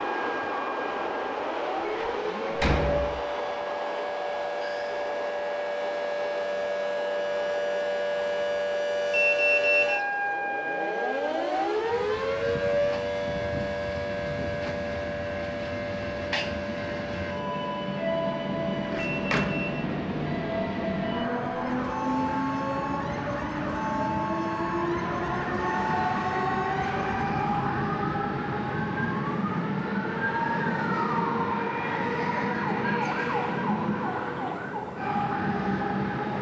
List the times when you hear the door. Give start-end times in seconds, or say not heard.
1.9-3.2, 18.9-19.4.